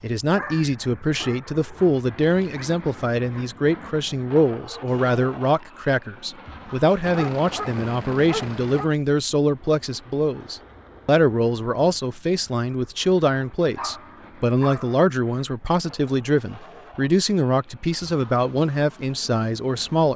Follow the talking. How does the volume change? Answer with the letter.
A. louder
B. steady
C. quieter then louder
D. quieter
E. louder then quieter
B.